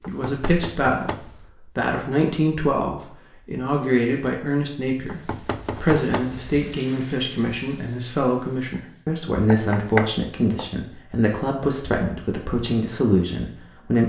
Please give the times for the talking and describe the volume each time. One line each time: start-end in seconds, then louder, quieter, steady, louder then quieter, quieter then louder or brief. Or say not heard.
0.1-14.0 steady.